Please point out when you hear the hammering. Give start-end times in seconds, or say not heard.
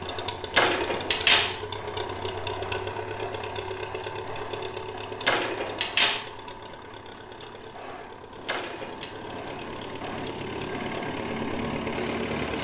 not heard.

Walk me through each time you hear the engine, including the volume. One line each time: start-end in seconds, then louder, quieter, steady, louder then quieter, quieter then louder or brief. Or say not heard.
0.0-12.6 quieter then louder.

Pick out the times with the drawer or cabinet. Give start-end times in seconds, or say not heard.
0.6-1.6, 5.2-6.2, 8.4-9.1.